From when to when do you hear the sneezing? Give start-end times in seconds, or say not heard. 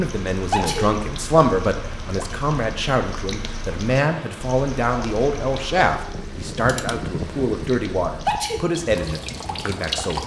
0.5-0.9, 8.2-8.7.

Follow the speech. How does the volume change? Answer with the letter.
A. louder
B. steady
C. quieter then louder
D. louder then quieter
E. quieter
B.